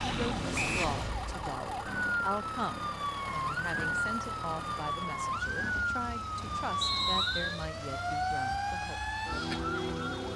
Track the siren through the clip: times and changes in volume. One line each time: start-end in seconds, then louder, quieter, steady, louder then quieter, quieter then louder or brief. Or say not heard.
0.0-10.3 steady.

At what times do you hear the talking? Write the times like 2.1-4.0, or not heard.
0.0-9.0.